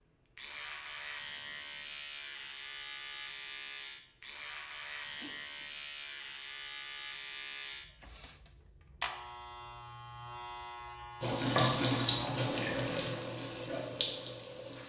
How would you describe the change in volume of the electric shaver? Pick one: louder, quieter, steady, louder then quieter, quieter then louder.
steady.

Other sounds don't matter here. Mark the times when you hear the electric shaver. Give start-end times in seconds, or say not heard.
0.3-12.3.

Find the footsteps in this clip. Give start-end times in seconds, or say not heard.
not heard.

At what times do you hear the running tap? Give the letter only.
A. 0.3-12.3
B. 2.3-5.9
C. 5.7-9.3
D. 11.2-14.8
D.